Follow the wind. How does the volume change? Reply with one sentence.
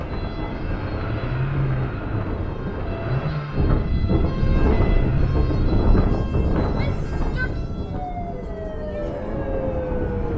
The loudness of the wind goes up, then down.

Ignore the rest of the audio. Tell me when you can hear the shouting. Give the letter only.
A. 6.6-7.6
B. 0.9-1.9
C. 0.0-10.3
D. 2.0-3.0
A.